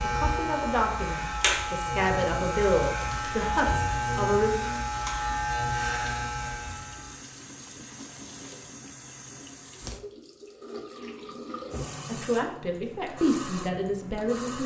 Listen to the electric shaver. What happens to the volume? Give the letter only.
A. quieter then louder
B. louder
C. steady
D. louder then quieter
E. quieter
C.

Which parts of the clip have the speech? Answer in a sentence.
You can hear the speech from 0.0 to 4.5 s and from 12.1 to 14.6 s.